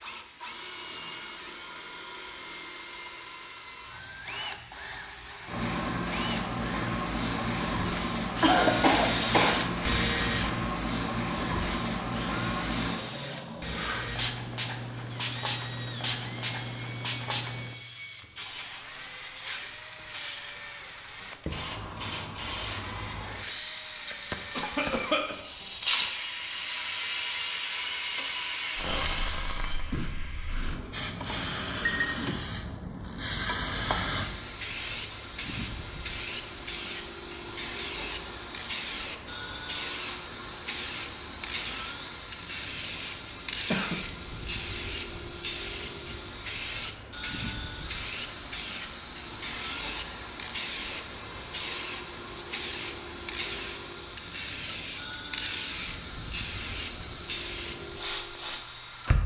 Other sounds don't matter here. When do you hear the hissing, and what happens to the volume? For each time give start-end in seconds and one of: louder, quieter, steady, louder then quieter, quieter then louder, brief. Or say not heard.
0.0-59.2 steady.